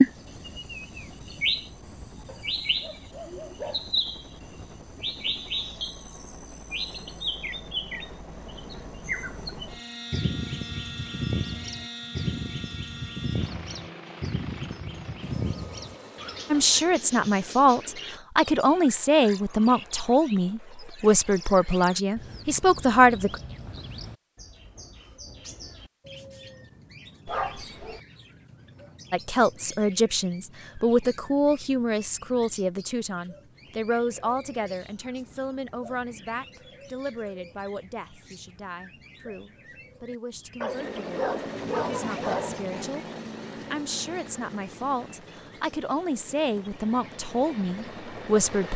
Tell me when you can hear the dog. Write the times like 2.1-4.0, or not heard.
2.2-4.0, 27.2-28.0, 40.6-42.6.